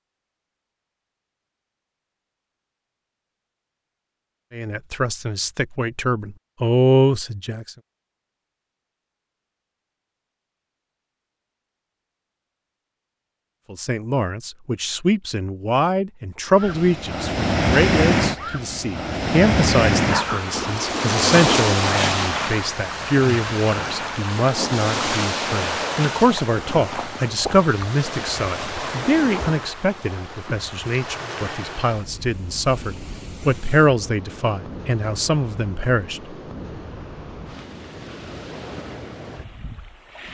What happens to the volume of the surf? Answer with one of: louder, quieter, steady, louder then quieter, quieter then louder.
quieter.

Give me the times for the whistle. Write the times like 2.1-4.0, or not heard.
not heard.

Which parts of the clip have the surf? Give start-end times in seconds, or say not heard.
16.6-40.2.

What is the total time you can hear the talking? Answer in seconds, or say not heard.
26 s.